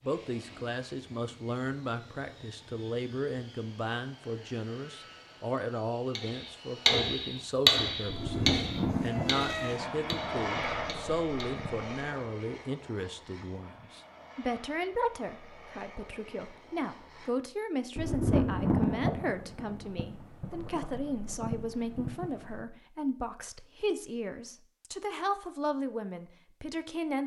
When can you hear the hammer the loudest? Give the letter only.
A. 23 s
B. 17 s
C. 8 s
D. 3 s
C.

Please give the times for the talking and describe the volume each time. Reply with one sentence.
You can hear the talking from 0.0 to 27.2 s, at a steady volume.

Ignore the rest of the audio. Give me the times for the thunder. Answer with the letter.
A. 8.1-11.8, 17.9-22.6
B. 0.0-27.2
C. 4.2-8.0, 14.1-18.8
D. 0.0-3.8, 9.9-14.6
A.